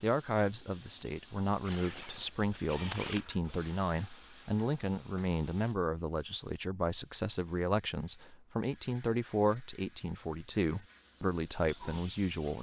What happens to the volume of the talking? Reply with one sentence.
The loudness of the talking stays about the same.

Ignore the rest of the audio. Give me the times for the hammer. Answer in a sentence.
The hammer can't be heard in this clip.